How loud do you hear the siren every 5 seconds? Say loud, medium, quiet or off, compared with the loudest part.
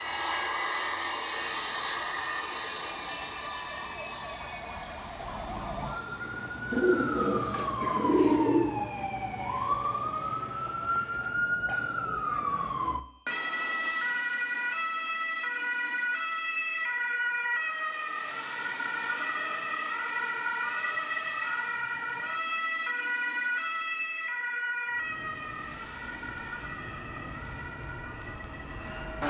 quiet, loud, loud, loud, loud, medium.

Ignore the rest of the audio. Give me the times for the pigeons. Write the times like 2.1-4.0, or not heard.
6.7-8.6.